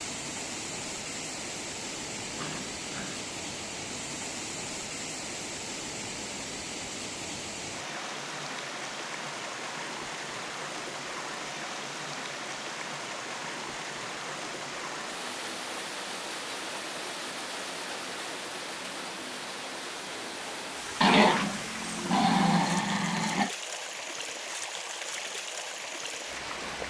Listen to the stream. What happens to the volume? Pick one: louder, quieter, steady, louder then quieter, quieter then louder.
steady.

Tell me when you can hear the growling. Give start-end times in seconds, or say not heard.
2.4-3.2, 21.0-23.5.